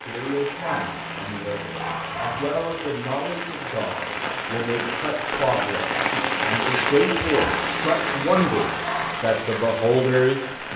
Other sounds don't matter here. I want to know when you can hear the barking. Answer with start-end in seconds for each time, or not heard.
0.6-2.5, 7.2-9.2.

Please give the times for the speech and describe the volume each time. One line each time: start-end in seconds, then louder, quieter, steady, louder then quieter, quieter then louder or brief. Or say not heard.
0.0-10.7 louder.